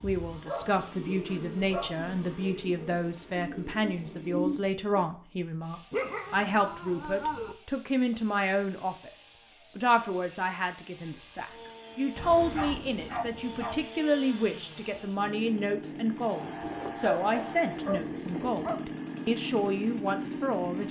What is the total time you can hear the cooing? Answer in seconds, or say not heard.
5 s.